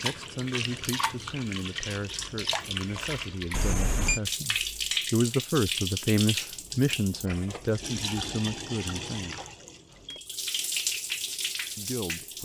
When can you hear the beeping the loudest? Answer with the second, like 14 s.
4 s.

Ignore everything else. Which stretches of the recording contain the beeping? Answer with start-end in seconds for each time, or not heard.
3.5-4.2, 9.1-10.3.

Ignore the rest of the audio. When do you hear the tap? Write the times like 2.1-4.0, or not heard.
0.0-12.3.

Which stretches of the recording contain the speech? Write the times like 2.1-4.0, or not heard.
0.0-9.3, 11.8-12.3.